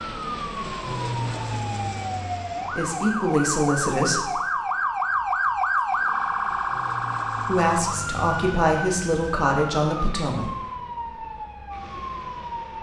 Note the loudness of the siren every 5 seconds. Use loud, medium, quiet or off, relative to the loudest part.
loud, loud, medium.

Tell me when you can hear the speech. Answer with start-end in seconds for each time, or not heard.
2.7-4.3, 7.3-10.5.